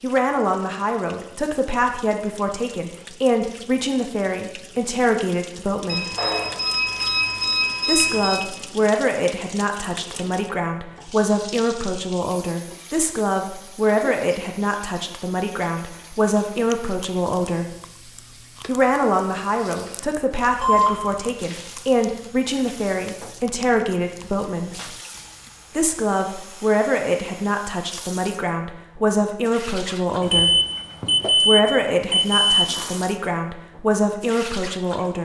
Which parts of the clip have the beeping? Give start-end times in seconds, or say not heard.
5.8-8.4, 20.4-20.9, 30.2-32.9.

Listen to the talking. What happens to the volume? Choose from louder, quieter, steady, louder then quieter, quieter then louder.
steady.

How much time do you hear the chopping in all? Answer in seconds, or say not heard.
not heard.